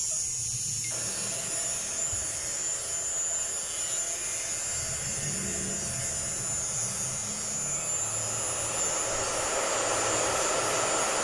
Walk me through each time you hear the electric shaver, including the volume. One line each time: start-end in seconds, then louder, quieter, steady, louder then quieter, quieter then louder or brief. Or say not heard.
0.0-11.2 steady.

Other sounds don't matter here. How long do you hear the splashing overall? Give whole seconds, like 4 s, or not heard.
not heard.